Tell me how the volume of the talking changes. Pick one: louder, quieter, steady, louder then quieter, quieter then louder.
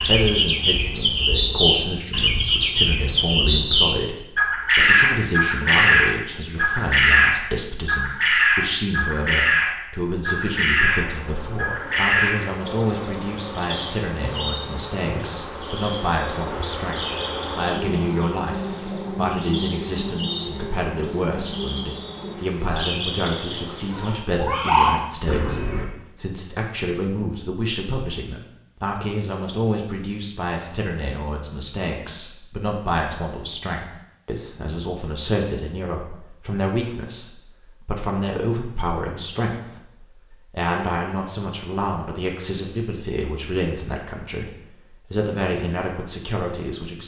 steady.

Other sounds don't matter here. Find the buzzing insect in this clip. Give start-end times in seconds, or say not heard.
10.8-22.4.